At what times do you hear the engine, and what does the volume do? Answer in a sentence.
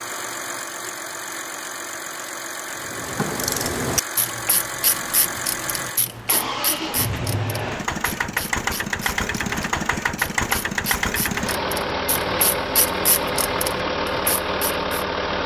You can hear the engine from 0.0 to 15.4 s, getting louder.